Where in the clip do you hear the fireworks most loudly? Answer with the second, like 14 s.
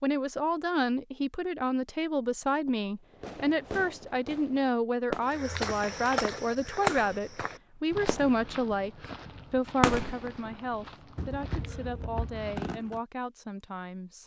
10 s.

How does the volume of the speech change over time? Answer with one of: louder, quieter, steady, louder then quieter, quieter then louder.
quieter.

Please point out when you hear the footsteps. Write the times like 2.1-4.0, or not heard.
5.2-12.7.